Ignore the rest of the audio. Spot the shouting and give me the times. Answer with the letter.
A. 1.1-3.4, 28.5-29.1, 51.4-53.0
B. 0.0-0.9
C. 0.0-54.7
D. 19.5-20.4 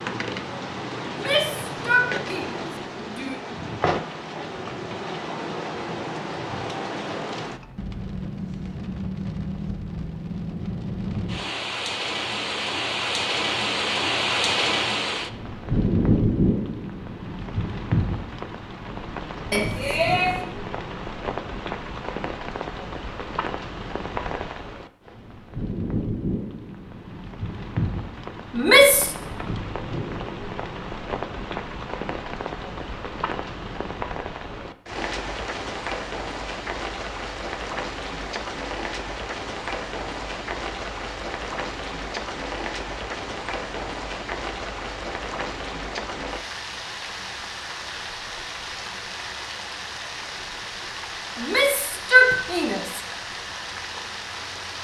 A.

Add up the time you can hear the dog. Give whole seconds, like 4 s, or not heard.
not heard.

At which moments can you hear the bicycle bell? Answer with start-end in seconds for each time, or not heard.
19.5-20.4.